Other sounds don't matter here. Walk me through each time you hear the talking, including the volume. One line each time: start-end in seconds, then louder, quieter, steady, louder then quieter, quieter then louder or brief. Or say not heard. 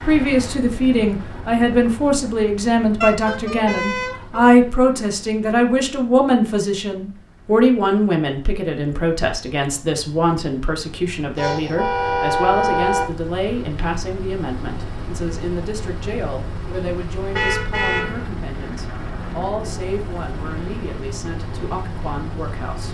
0.0-22.8 quieter.